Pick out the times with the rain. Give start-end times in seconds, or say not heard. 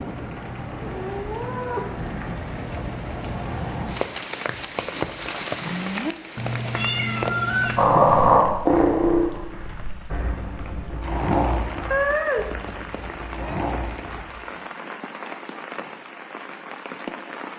0.0-17.5.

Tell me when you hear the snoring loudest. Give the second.
8 s.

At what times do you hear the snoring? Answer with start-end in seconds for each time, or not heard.
7.6-14.8.